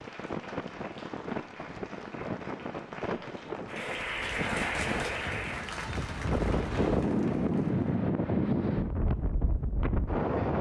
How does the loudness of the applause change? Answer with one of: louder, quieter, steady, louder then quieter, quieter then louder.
louder then quieter.